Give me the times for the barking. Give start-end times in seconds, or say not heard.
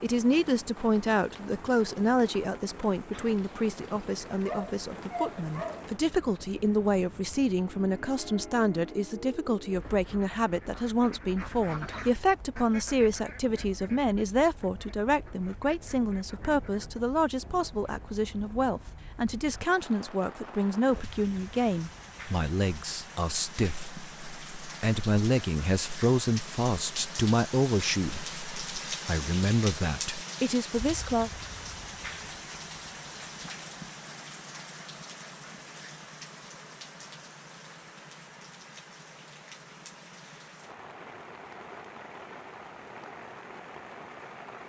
3.1-5.8.